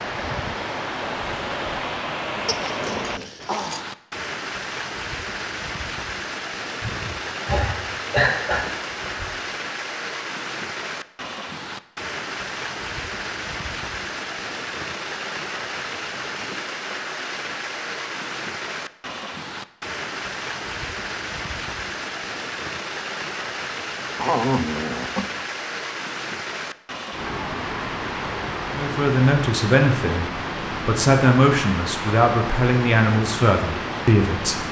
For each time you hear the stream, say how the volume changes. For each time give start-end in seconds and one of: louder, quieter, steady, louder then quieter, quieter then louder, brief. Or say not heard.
0.0-34.6 steady.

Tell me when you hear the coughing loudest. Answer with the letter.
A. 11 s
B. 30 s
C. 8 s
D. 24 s
C.